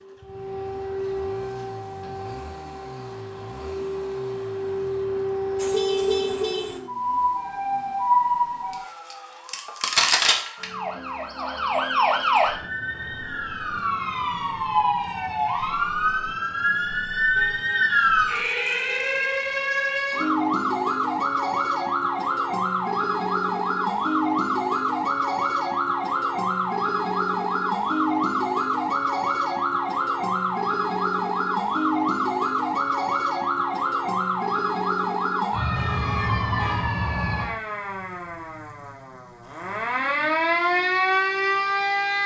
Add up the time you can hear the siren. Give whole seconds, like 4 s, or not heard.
42 s.